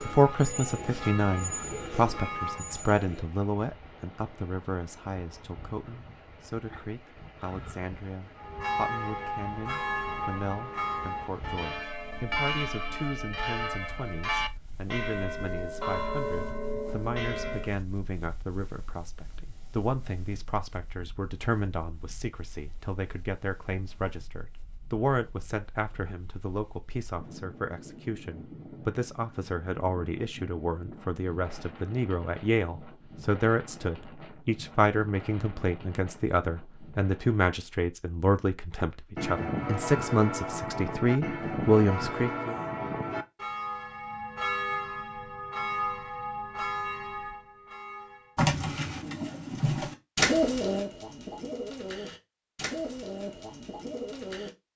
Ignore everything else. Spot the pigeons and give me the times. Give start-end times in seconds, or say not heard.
0.0-3.2, 48.4-54.5.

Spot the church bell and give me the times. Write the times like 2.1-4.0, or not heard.
0.0-2.9, 8.3-17.8, 39.1-48.4.